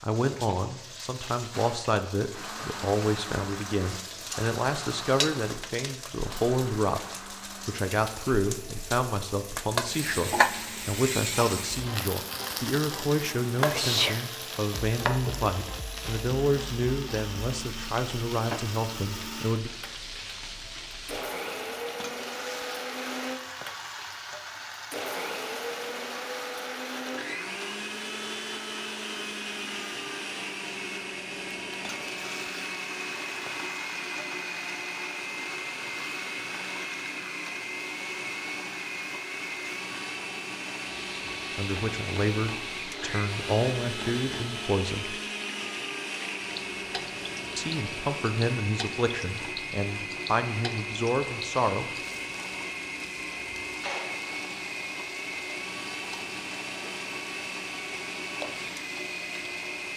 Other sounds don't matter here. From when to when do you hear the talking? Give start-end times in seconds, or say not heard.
0.0-19.7, 41.5-45.1, 47.5-51.9.